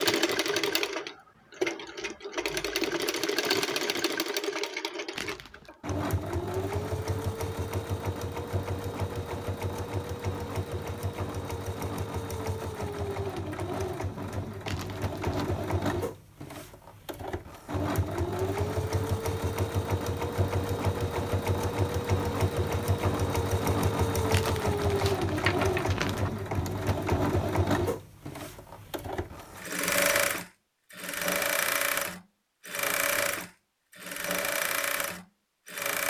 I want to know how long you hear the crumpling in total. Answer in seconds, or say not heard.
3 s.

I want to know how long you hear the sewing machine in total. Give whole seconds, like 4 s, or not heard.
36 s.